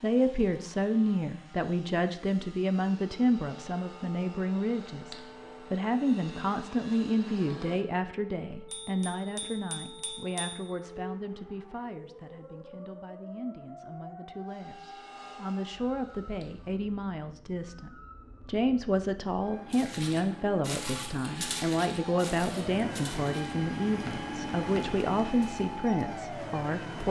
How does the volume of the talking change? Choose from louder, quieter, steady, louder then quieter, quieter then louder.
quieter then louder.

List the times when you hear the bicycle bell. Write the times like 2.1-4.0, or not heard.
8.7-10.7.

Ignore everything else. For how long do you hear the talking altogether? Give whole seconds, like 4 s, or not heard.
27 s.